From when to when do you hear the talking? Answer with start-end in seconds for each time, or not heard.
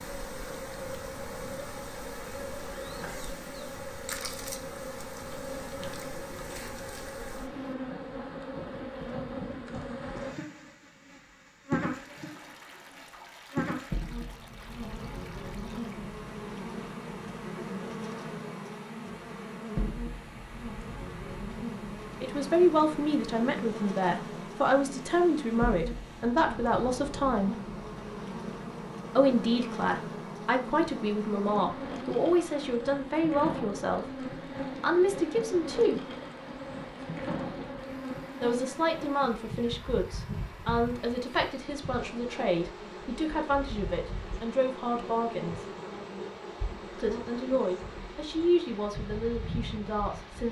22.2-27.6, 29.1-36.0, 38.4-45.6, 46.9-50.4.